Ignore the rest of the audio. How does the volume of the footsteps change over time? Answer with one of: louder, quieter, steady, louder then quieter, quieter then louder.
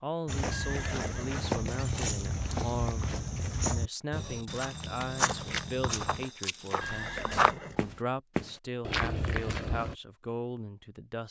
steady.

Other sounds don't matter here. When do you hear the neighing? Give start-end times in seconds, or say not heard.
0.5-1.4, 6.8-8.0.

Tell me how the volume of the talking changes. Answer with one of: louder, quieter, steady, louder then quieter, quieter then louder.
steady.